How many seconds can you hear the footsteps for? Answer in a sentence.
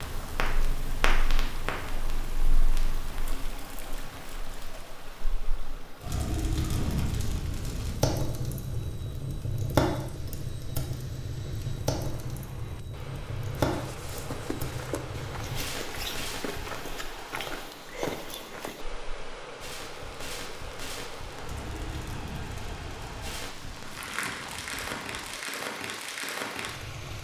The footsteps can be heard for 5 seconds in total.